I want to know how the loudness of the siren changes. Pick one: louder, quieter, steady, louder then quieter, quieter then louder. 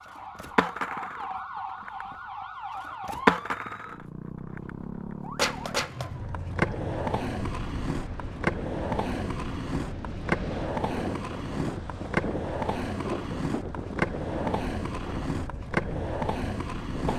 steady.